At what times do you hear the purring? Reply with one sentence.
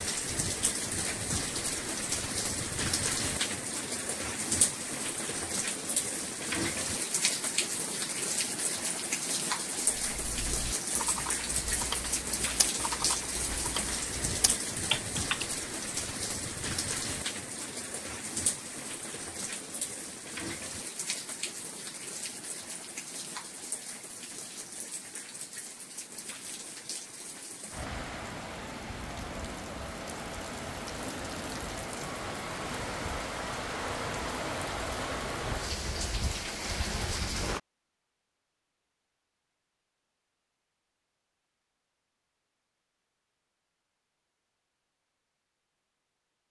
The purring can't be heard in this clip.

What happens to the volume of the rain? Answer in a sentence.
The loudness of the rain goes down, then up.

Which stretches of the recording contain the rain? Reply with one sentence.
The rain can be heard from 0.0 to 37.6 s.